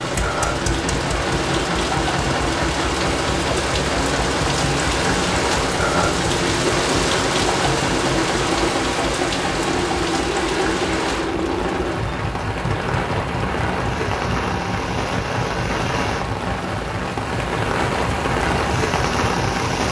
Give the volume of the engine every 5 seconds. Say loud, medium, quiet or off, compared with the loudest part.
loud, loud, loud, medium.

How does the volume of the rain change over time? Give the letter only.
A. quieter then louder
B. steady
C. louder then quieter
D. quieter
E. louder
B.